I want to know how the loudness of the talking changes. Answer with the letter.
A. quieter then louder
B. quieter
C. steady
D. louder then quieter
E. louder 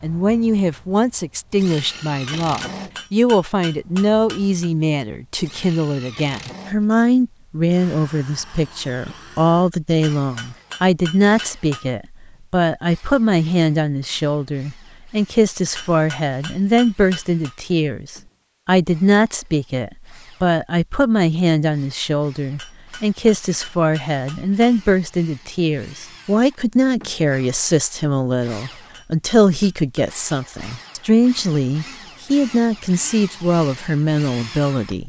C.